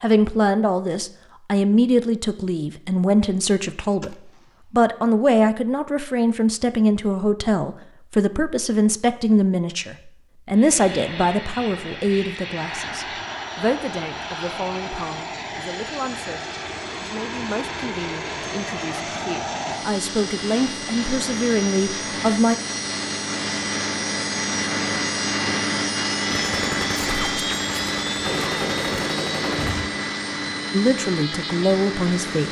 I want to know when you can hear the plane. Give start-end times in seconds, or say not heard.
10.5-32.4.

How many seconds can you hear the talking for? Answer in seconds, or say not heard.
24 s.